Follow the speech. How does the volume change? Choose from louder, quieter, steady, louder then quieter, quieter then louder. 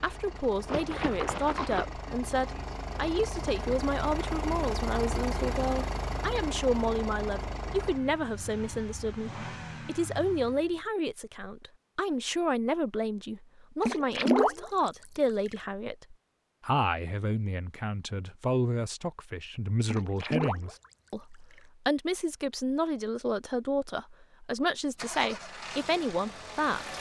steady.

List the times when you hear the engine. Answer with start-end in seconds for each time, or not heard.
0.0-10.9, 24.9-26.9.